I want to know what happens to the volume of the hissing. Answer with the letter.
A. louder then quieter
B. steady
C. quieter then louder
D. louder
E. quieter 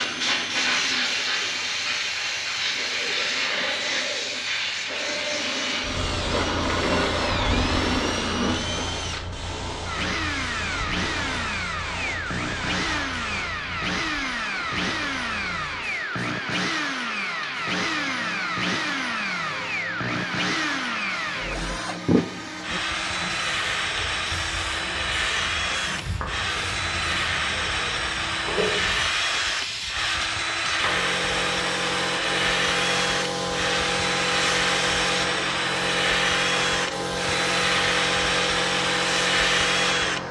C.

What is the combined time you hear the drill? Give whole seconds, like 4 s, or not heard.
40 s.